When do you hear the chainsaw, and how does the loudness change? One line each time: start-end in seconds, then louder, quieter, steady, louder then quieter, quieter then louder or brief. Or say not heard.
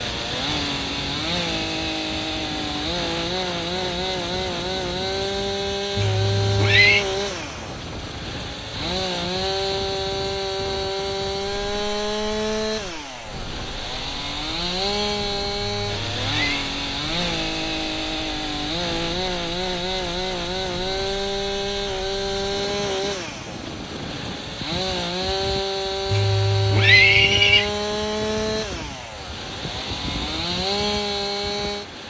0.0-32.0 steady.